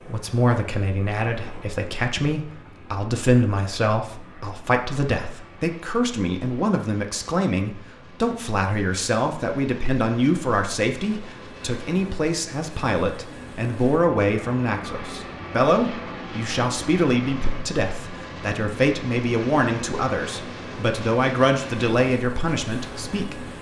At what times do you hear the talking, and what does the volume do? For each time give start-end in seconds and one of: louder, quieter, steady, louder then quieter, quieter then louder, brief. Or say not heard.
0.0-23.4 steady.